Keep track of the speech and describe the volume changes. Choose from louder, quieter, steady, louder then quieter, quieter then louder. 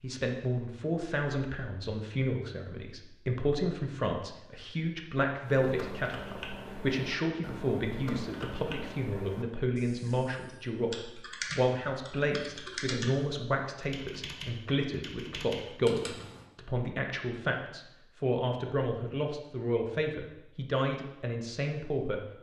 steady.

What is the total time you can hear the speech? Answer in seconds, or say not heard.
22 s.